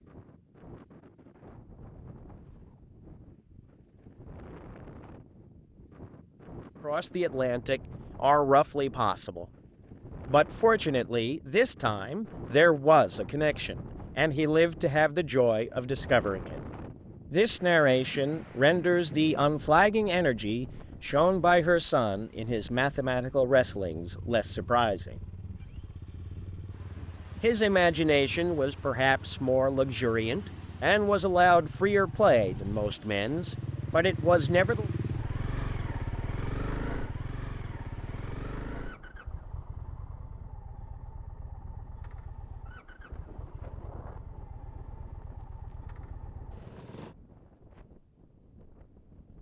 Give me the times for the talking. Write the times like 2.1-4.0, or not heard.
6.8-9.4, 10.2-16.6, 17.3-25.1, 27.4-34.9.